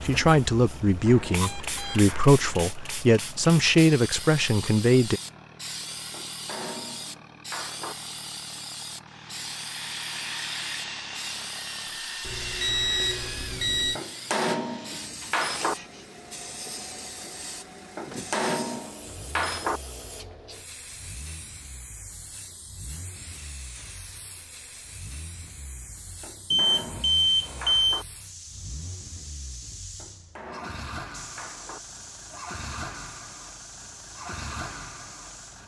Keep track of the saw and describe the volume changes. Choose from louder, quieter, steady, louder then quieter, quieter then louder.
quieter.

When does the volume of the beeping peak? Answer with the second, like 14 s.
27 s.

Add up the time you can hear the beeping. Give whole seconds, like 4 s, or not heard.
5 s.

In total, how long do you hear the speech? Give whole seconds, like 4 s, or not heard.
5 s.